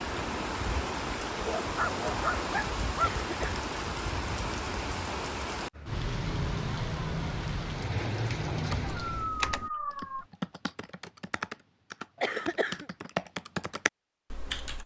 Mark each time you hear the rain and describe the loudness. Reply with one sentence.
You can hear the rain from 0.0 to 9.3 s, at a steady volume.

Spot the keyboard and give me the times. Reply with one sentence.
The keyboard can be heard from 8.6 to 14.8 s.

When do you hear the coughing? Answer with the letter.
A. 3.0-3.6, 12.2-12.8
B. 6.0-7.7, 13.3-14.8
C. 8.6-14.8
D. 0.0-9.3
A.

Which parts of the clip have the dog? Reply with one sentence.
You can hear the dog from 1.4 to 3.1 s and from 8.8 to 10.2 s.